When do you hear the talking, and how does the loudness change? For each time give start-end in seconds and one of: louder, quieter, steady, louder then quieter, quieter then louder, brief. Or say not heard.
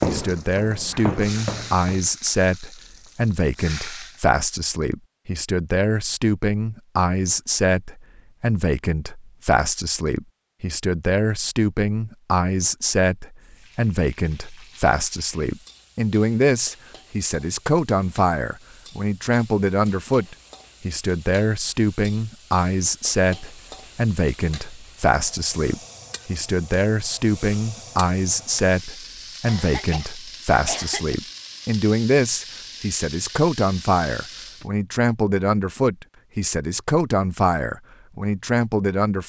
0.1-39.2 steady.